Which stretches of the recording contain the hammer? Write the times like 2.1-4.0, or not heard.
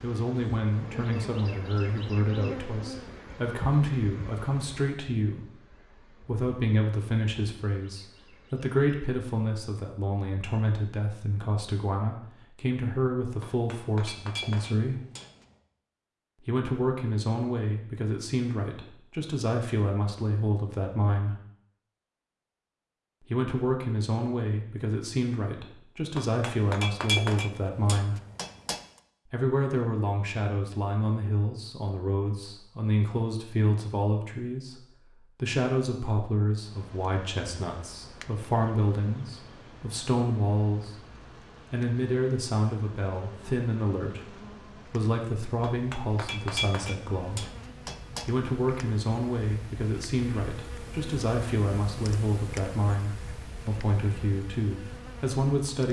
13.4-15.6, 26.1-28.8, 45.6-48.3.